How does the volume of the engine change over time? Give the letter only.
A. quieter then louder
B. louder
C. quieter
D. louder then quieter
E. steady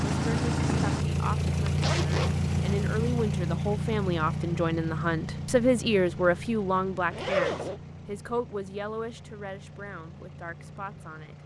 C.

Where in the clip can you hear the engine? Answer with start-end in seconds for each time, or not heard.
0.0-11.4.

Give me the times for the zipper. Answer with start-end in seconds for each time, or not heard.
1.6-2.8, 7.1-7.8.